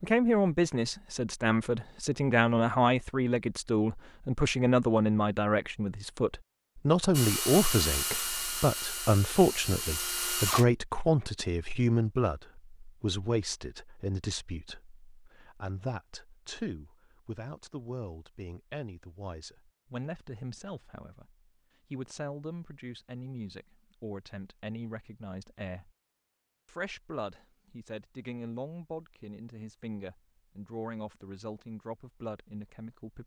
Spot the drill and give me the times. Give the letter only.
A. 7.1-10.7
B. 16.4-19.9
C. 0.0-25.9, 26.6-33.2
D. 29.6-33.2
A.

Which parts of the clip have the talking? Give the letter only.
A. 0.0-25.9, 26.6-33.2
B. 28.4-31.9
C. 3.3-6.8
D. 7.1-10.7
A.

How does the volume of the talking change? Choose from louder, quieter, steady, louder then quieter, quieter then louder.
quieter.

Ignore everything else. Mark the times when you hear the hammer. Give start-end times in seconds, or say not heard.
not heard.